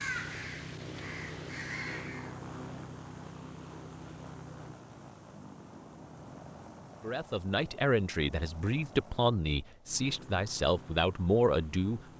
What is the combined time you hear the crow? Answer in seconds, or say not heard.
2 s.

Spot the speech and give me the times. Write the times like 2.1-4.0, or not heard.
7.0-12.1.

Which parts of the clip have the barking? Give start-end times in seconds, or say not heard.
not heard.